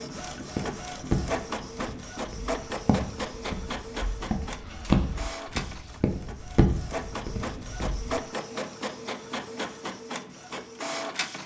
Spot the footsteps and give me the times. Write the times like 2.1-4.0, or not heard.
0.3-8.2.